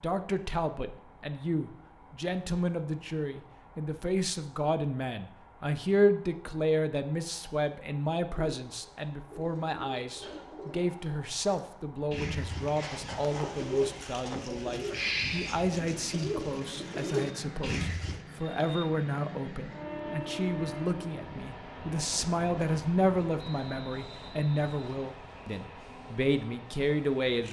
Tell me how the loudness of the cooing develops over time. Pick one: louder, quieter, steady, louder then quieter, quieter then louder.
louder.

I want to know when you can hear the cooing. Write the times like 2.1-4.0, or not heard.
8.3-18.2.